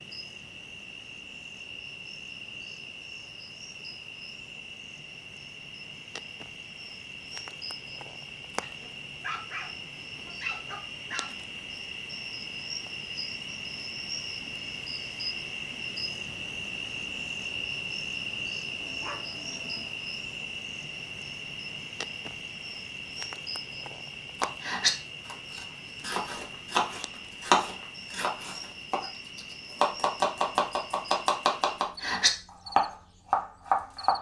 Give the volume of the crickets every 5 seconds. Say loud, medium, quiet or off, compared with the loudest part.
medium, medium, loud, loud, loud, medium, medium.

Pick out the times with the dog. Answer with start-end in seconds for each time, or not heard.
8.6-11.3, 18.8-19.9.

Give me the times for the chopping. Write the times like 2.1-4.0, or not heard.
24.4-34.1.